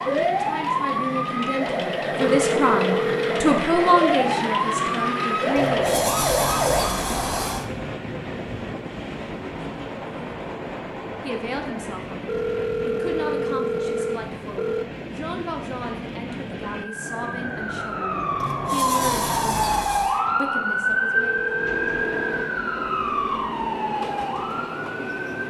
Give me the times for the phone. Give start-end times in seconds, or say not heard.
2.2-3.5, 12.2-14.8, 21.1-22.6.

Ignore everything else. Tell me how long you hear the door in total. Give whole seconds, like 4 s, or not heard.
4 s.